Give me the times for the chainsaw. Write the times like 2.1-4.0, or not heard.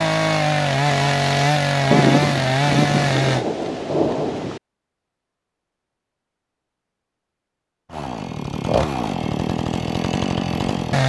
0.0-3.5, 7.9-11.0.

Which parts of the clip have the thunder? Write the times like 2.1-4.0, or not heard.
1.9-4.6.